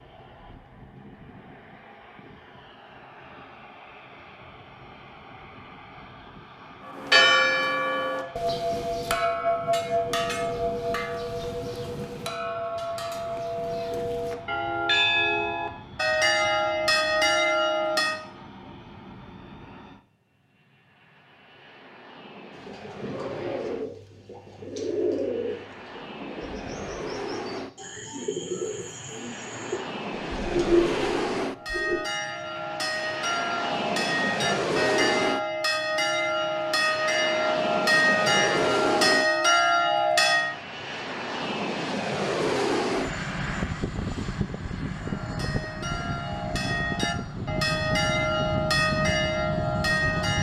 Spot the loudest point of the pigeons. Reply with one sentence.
The loudest moment of the pigeons is at 31 seconds.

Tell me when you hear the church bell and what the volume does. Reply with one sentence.
You can hear the church bell from 6.8 to 18.2 s, getting quieter then louder; from 31.5 to 40.5 s, getting louder; and from 44.9 to 50.3 s, getting louder.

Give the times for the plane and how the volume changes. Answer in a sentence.
You can hear the plane from 0.0 to 50.3 s, getting louder.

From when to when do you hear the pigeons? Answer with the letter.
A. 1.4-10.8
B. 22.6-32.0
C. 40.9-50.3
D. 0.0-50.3
B.